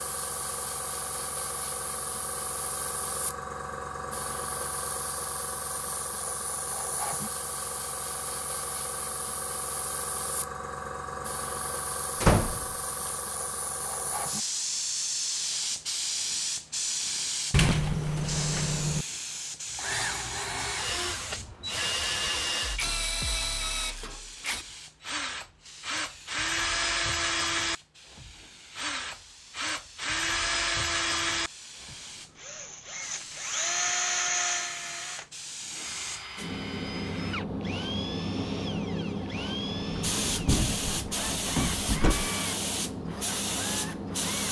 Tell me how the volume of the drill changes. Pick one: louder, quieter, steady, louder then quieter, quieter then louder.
quieter.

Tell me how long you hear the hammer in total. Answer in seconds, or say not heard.
not heard.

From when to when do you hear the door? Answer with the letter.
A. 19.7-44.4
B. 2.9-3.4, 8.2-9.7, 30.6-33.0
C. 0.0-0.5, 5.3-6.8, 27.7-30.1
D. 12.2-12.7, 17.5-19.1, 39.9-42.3
D.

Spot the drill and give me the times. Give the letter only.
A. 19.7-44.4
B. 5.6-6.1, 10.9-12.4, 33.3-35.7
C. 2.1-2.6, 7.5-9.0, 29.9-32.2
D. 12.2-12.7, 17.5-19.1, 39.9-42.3
A.